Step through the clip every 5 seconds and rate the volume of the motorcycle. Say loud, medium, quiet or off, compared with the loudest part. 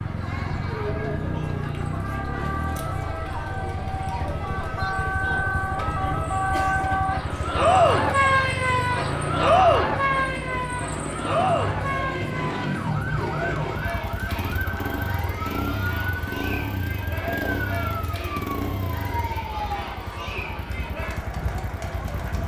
loud, loud, loud, loud, medium.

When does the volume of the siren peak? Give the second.
8 s.